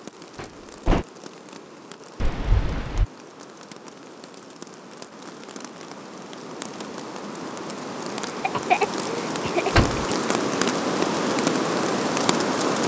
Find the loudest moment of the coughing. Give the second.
9 s.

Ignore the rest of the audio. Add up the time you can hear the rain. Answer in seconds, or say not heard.
13 s.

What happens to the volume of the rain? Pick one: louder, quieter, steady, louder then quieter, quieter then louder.
louder.